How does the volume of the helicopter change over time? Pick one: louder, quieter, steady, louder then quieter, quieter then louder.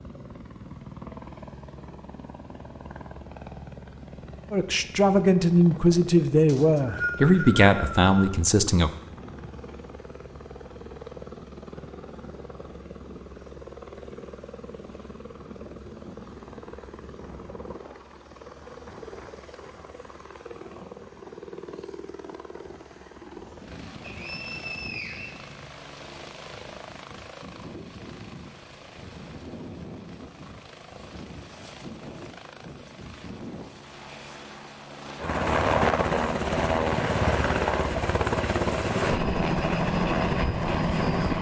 louder.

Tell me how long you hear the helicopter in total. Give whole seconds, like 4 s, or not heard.
41 s.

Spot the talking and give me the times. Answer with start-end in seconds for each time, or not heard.
4.5-8.9.